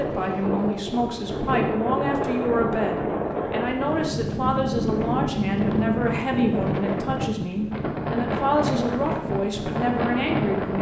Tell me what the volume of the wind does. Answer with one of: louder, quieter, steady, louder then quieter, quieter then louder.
steady.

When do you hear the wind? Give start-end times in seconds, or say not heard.
0.0-10.7.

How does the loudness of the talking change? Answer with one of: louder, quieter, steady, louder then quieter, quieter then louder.
steady.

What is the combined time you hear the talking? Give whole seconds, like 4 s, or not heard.
11 s.